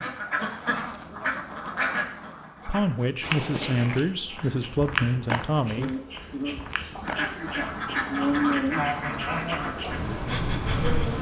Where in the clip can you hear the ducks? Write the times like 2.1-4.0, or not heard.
0.0-3.0, 6.9-11.1.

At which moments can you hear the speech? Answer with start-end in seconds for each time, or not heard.
2.6-5.9.